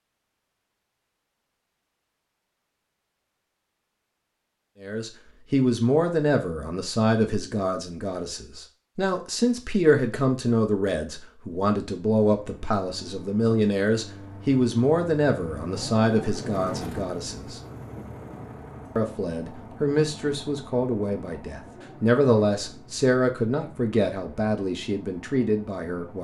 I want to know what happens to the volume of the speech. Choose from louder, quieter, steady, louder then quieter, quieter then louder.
steady.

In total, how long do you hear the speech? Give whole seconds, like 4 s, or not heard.
20 s.